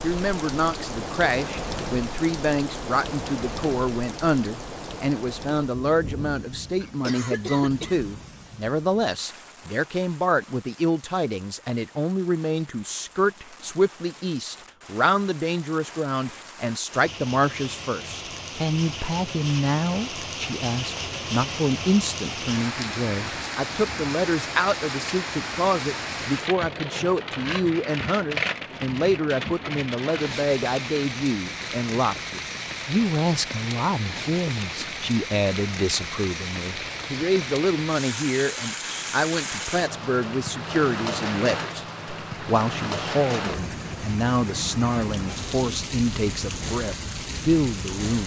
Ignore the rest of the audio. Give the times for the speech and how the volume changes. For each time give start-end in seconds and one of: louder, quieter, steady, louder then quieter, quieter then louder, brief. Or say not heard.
0.0-48.2 steady.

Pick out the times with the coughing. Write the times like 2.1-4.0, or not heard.
6.8-8.1.